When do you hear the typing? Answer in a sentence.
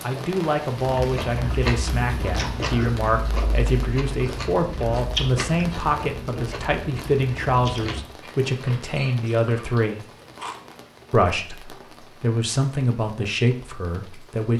The typing can't be heard in this clip.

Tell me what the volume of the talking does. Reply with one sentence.
The loudness of the talking stays about the same.